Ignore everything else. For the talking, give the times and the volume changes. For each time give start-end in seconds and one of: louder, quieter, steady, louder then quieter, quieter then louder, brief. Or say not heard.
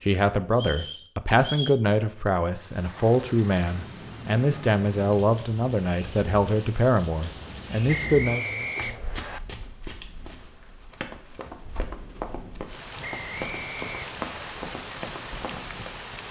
0.0-8.4 steady.